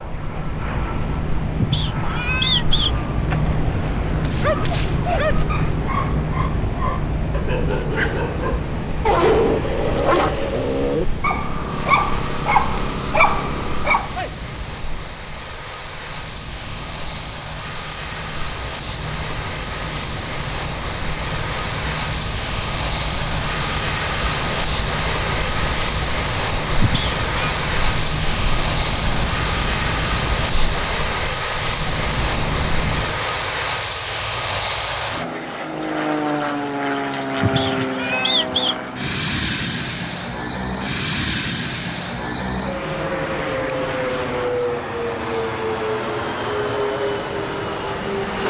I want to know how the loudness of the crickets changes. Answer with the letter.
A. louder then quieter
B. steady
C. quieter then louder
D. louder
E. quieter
C.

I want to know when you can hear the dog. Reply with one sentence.
You can hear the dog from 4.1 to 14.3 s.